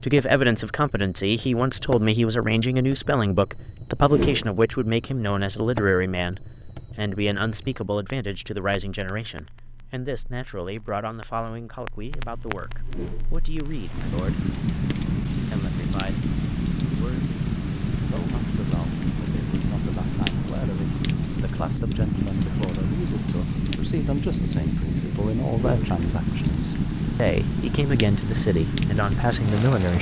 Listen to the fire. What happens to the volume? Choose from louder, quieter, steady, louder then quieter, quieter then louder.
quieter then louder.